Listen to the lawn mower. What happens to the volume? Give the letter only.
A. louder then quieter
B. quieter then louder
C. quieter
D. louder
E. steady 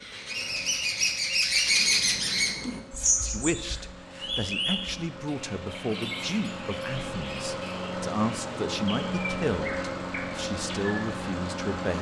D.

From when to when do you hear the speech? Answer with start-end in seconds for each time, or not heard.
3.2-11.9.